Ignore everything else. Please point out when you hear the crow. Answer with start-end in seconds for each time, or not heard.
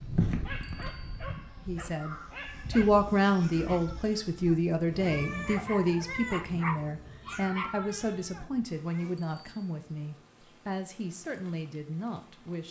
0.0-2.4.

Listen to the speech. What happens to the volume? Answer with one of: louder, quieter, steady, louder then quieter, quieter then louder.
quieter.